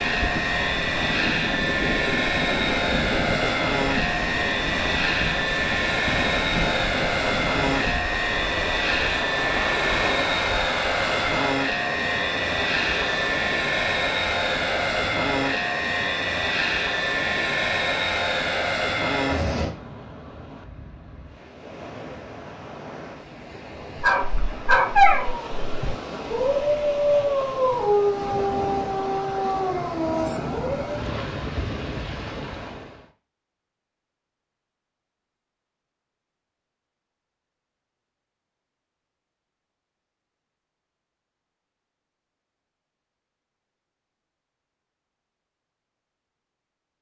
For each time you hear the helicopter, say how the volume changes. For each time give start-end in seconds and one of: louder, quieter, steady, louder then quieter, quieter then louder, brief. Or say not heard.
0.0-19.8 steady.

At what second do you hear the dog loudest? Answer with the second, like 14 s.
25 s.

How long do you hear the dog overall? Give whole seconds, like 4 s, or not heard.
7 s.